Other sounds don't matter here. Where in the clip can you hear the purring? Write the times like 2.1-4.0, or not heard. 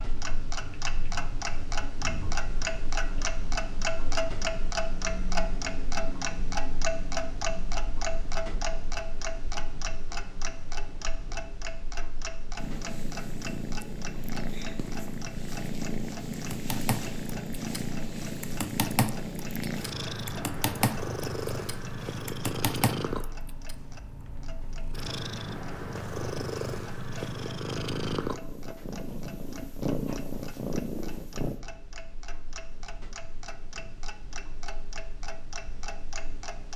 12.6-31.6.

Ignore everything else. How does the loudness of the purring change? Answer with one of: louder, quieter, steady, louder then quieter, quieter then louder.
steady.